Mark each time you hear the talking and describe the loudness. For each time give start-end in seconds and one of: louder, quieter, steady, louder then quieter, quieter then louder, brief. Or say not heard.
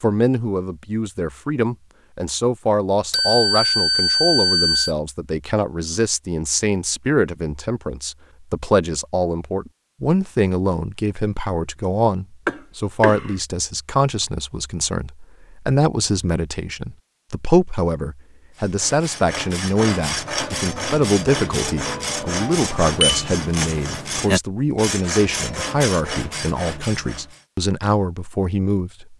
0.0-29.1 steady.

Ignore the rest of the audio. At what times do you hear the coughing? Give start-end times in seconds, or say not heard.
12.4-13.3.